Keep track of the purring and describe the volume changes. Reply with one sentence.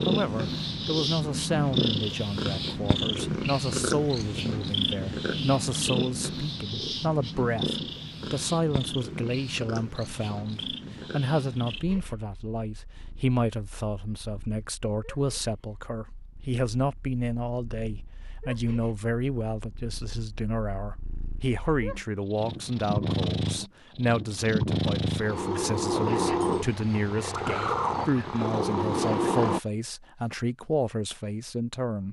The loudness of the purring goes down, then up.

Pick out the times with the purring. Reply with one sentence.
The purring can be heard from 0.0 to 29.6 s.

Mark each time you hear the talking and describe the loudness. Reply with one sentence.
The talking can be heard from 0.1 to 32.0 s, at a steady volume.